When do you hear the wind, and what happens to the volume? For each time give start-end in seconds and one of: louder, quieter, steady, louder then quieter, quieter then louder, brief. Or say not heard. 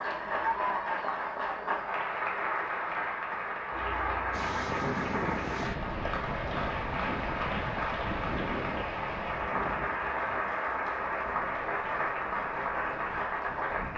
4.3-13.9 quieter.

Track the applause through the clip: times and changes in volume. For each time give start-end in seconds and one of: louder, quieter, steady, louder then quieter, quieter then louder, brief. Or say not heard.
0.0-13.9 steady.